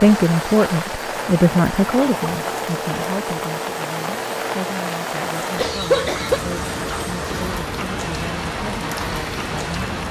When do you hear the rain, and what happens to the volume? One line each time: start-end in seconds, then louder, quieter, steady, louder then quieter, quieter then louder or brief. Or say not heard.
0.0-10.0 steady.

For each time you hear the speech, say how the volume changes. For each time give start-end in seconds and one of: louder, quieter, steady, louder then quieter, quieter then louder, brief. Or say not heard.
0.0-10.0 quieter.